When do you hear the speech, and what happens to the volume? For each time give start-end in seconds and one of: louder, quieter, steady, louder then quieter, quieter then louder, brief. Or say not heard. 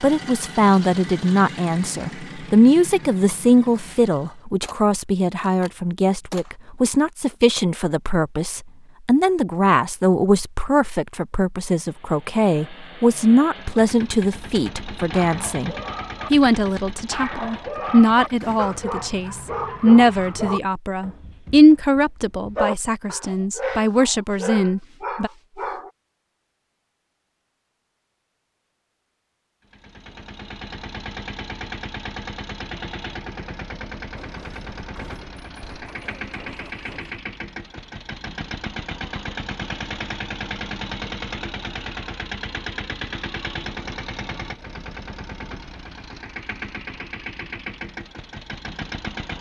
0.0-25.3 steady.